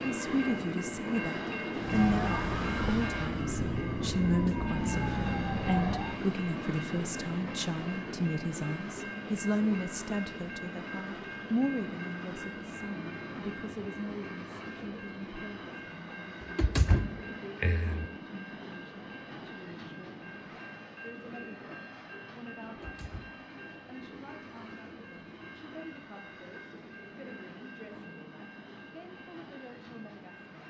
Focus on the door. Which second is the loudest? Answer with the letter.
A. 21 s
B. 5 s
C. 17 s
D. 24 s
C.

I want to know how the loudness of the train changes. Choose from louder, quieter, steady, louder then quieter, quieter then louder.
quieter.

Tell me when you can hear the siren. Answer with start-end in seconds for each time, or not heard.
1.7-6.2.